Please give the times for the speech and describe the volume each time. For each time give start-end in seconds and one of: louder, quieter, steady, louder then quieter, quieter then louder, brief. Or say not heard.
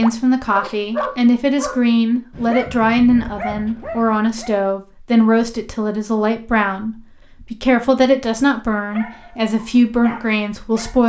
0.0-11.0 steady.